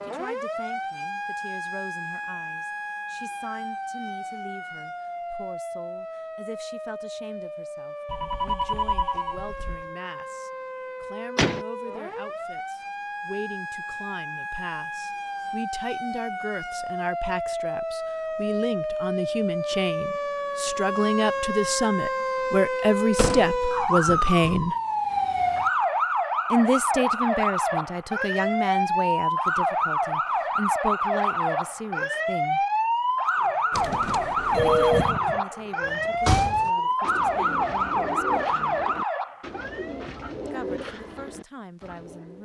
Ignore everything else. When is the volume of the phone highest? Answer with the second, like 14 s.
35 s.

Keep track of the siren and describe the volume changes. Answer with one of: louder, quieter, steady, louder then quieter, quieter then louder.
louder.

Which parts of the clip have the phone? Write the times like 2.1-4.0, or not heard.
8.1-9.8, 33.7-35.1.